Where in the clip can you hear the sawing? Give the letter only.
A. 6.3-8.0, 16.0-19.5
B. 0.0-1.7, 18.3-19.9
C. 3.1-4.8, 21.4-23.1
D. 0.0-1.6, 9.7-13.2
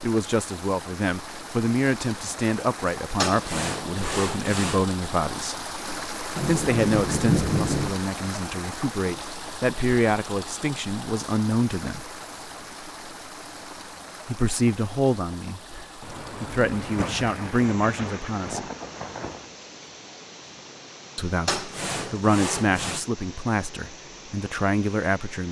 C.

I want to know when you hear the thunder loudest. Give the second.
7 s.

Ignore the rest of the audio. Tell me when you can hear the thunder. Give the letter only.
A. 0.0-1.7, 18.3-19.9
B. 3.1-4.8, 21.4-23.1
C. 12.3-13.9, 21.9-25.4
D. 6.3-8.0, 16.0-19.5
D.